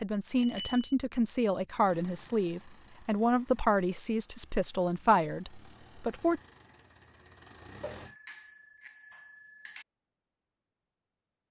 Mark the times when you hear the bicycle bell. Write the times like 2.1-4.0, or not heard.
0.3-0.9, 7.8-9.8.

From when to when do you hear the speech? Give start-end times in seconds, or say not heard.
0.0-6.4.